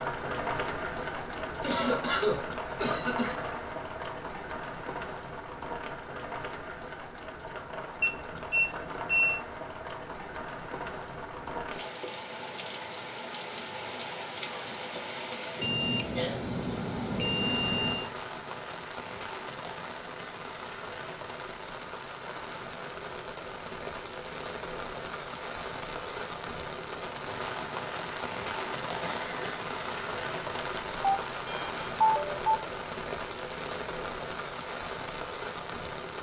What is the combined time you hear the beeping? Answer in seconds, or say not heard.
6 s.